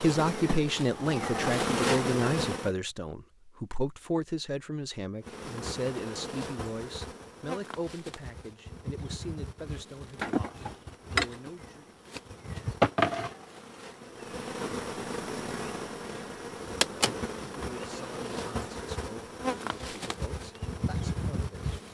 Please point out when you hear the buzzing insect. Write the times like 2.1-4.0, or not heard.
0.0-2.7, 5.2-21.8.